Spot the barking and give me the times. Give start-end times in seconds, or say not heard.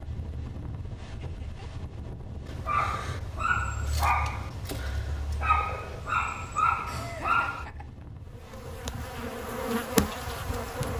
2.5-7.7.